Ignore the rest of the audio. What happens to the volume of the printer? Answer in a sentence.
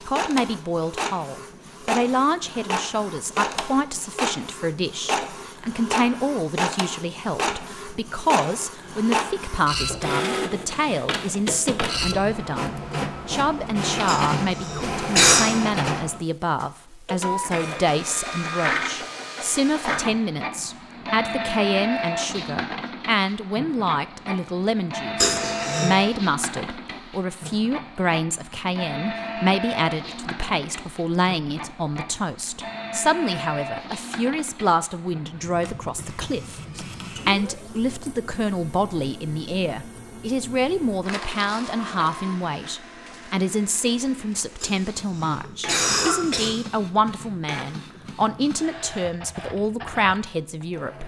The loudness of the printer goes down.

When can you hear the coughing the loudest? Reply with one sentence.
The loudest moment of the coughing is at 15 seconds.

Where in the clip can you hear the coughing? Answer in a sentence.
The coughing can be heard from 14.1 to 15.4 s, from 25.2 to 25.9 s and from 44.6 to 46.5 s.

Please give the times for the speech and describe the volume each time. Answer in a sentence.
You can hear the speech from 0.1 to 51.0 s, at a steady volume.